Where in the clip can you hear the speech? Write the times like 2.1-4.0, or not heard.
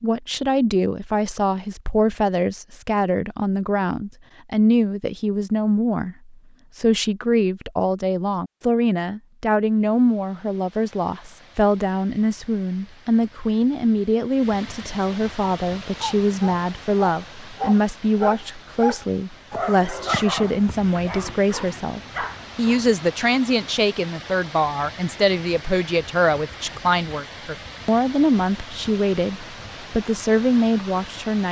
0.0-31.4.